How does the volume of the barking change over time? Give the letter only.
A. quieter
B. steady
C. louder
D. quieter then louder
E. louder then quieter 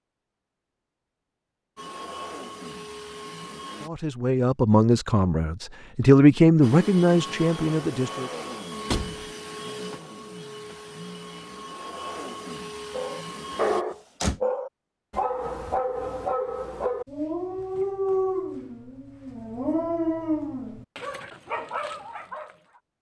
A.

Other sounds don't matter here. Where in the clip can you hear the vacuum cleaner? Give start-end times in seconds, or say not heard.
1.8-3.9, 6.6-13.8.